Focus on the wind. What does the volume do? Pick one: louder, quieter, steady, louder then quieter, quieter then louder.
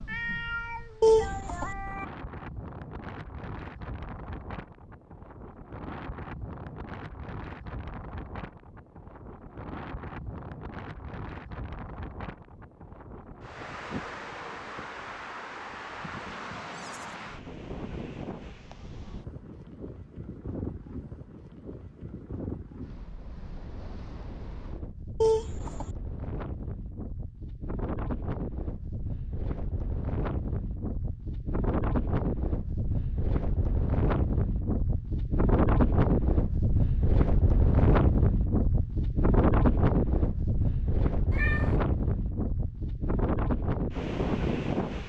louder.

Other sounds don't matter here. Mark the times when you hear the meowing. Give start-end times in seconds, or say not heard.
0.1-2.0, 16.3-17.3, 41.3-41.8.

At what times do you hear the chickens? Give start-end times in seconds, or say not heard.
1.0-1.8, 25.2-25.9.